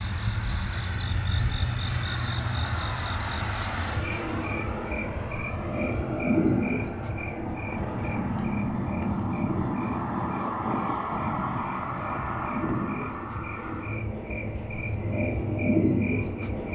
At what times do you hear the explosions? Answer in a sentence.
The explosions can be heard from 7.7 to 10.4 s.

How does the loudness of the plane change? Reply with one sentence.
The volume of the plane goes up, then down.